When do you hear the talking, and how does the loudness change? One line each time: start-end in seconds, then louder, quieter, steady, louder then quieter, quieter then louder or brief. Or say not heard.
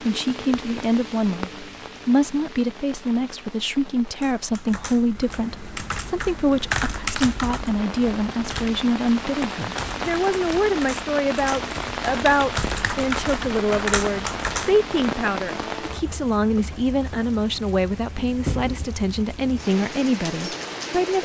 0.0-21.2 steady.